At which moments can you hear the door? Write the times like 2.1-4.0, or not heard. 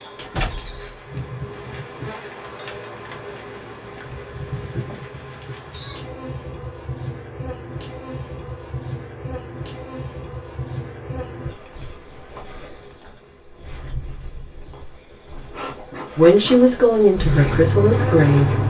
0.1-0.9.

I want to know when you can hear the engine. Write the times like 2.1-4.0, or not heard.
17.1-18.6.